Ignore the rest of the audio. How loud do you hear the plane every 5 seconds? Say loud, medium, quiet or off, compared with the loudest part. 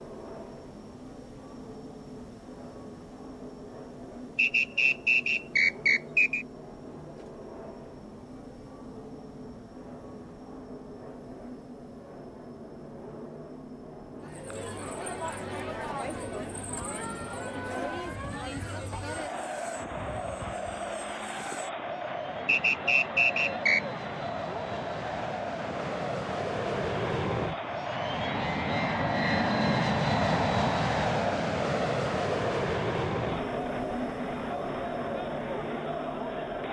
quiet, quiet, quiet, quiet, quiet, loud, loud, medium.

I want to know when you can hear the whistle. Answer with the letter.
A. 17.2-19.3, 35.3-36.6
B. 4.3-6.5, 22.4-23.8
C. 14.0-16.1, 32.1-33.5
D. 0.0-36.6
B.